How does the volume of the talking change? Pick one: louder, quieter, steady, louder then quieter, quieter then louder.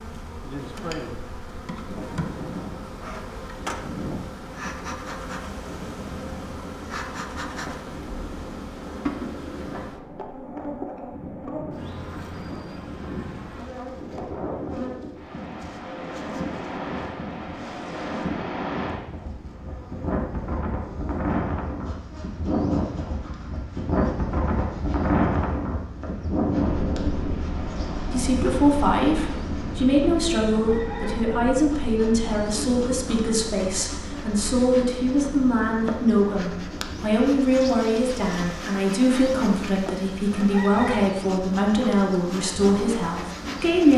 steady.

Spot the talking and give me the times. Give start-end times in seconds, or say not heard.
28.1-43.9.